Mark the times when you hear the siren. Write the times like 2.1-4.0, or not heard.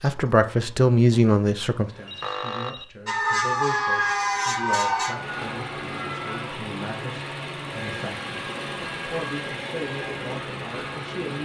3.0-6.5.